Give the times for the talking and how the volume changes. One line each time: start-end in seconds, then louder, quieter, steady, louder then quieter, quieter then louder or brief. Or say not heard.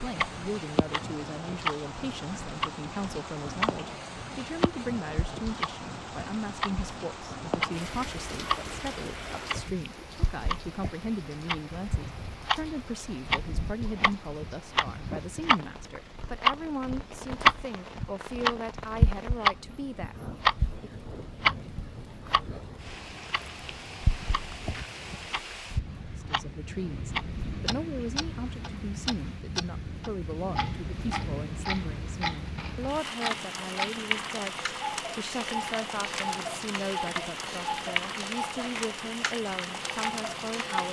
0.0-21.1 steady
26.1-40.8 steady.